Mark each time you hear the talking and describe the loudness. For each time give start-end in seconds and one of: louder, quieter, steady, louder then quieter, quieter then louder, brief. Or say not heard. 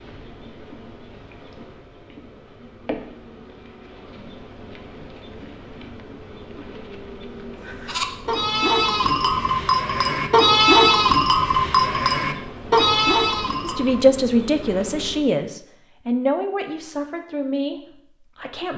13.6-18.7 quieter.